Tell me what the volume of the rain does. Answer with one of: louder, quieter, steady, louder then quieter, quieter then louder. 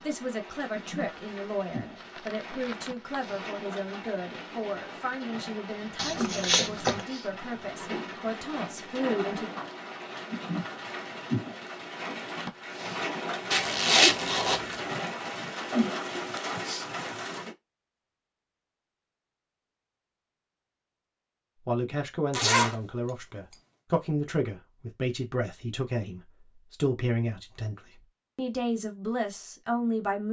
louder.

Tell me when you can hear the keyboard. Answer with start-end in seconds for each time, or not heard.
not heard.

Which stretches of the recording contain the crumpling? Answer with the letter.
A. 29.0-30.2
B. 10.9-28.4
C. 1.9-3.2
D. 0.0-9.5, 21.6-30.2
C.